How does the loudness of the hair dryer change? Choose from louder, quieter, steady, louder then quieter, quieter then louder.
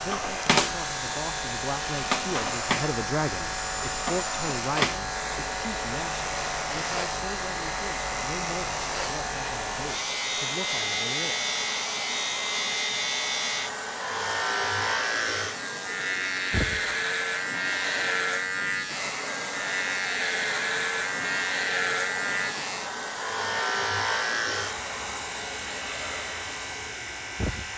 steady.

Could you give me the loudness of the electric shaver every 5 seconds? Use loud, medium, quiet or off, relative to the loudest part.
loud, loud, loud, loud, loud, medium.